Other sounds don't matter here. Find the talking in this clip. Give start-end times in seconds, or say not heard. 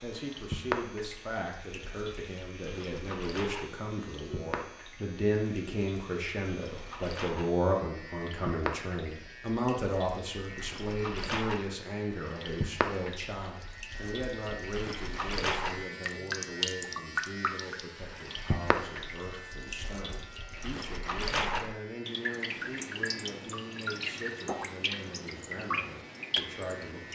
0.0-27.0.